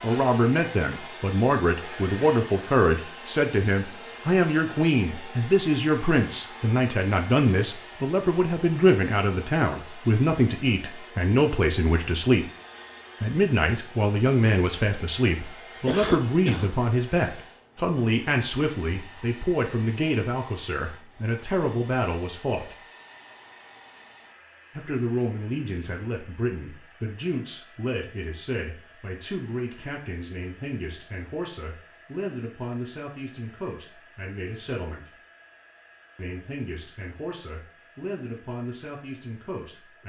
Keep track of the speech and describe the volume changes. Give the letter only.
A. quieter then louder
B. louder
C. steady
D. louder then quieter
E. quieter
E.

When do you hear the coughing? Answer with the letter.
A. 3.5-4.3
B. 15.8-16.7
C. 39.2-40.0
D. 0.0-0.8
B.